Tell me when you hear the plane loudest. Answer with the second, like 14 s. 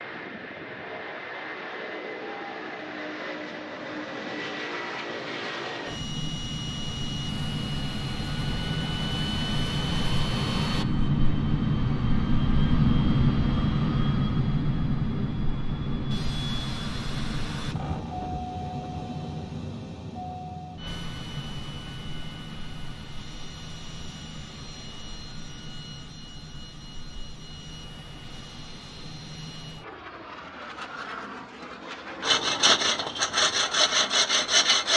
13 s.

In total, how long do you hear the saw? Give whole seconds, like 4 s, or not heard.
3 s.